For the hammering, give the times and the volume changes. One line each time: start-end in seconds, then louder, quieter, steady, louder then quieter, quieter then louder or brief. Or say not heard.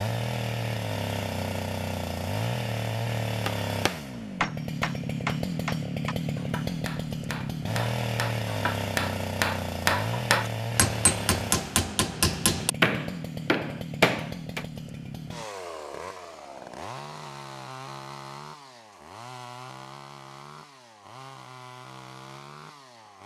3.5-14.7 quieter then louder.